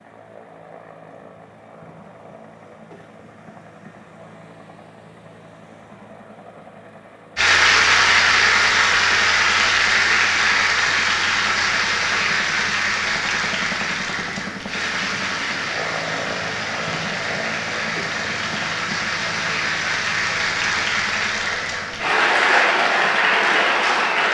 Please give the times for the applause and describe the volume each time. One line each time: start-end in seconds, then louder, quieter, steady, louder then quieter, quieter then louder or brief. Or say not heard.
7.3-24.2 quieter then louder.